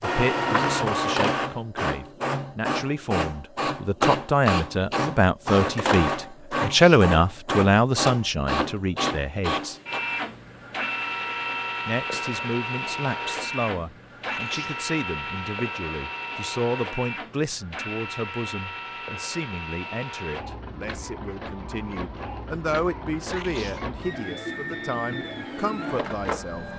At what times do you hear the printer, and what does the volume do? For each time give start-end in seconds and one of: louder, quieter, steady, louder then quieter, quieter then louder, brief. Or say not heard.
0.0-26.7 quieter.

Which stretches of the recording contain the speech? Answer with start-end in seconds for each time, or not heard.
0.0-9.8, 11.8-26.6.